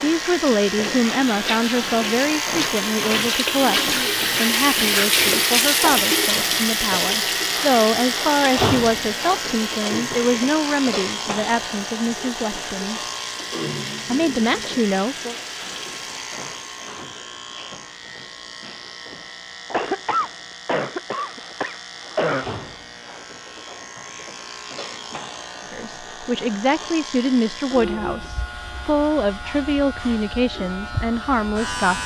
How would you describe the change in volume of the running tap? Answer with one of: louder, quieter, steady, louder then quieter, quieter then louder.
louder then quieter.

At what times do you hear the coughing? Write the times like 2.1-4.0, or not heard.
19.7-22.4.